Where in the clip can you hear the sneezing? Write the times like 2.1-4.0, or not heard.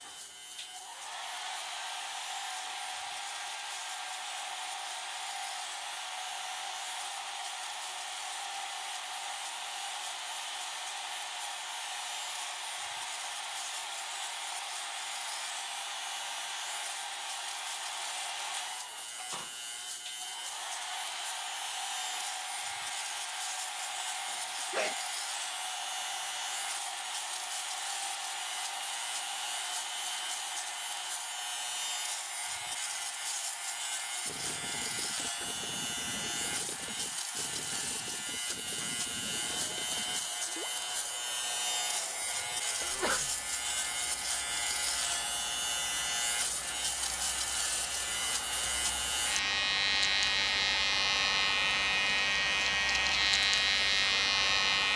24.2-24.9, 42.8-43.3.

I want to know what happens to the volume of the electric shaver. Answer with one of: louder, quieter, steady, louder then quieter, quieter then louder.
louder.